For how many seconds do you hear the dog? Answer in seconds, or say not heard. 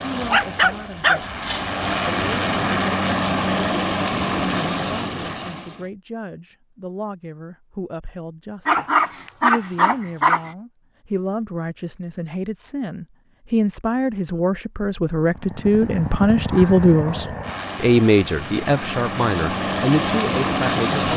5 s.